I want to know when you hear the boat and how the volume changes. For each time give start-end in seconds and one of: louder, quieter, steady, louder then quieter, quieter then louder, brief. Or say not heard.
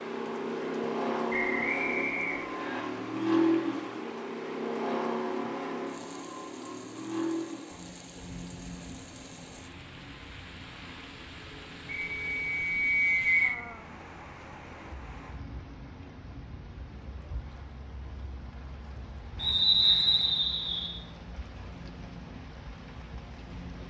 0.0-23.8 quieter.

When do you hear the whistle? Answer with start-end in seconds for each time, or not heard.
1.3-2.9, 11.8-13.6, 19.4-20.9.